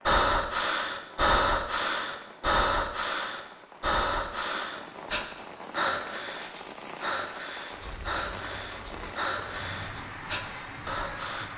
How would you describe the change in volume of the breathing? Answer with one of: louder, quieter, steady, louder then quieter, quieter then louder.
quieter.